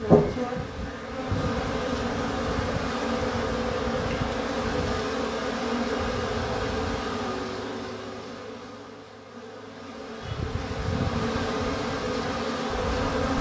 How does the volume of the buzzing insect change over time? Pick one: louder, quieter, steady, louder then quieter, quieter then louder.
quieter then louder.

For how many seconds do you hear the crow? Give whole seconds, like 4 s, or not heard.
8 s.